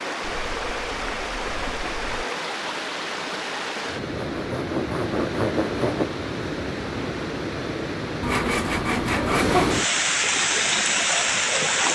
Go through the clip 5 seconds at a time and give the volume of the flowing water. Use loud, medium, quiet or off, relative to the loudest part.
medium, medium, loud.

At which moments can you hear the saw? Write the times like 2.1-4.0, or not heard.
0.2-2.2, 4.2-6.1, 8.2-9.8.